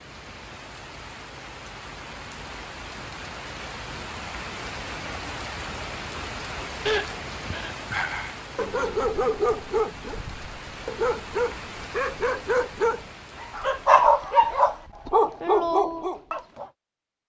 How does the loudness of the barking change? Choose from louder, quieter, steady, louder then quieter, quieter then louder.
louder.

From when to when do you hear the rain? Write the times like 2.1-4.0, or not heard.
0.0-14.2.